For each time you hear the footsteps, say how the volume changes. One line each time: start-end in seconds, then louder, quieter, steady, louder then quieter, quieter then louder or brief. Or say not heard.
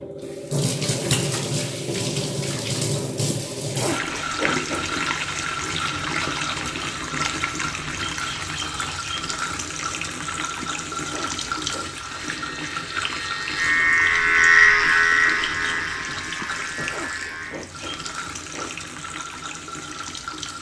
not heard.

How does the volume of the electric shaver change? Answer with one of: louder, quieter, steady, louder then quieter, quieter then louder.
louder then quieter.